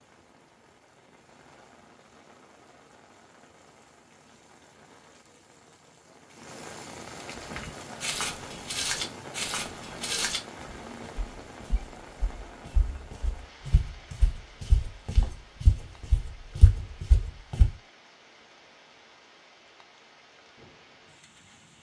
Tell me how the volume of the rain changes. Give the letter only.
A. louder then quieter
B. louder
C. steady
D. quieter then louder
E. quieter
A.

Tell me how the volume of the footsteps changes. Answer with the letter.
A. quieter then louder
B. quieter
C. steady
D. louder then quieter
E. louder
A.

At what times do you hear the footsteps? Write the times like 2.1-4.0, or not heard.
7.3-17.7.